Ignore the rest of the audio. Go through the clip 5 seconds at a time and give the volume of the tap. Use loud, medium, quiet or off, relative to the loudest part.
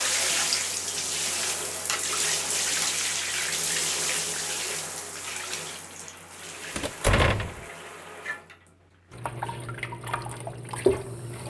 loud, medium, loud.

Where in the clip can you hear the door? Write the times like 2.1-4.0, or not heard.
6.8-7.7.